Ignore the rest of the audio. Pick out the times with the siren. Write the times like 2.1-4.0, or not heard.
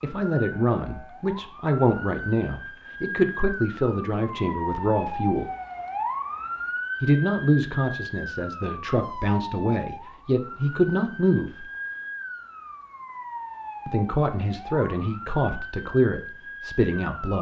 0.0-17.3.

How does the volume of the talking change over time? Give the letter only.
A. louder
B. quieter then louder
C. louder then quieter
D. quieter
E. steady
E.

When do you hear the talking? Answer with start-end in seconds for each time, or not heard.
0.0-5.5, 7.0-11.7, 13.8-17.3.